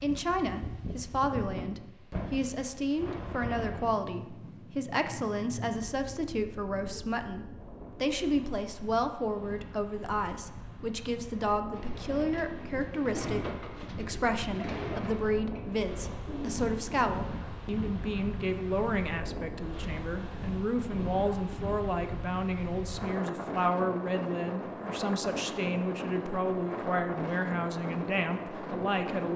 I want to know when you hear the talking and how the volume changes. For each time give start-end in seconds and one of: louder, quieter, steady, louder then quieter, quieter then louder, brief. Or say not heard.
0.0-29.3 steady.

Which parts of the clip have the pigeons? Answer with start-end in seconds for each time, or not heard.
11.7-16.9.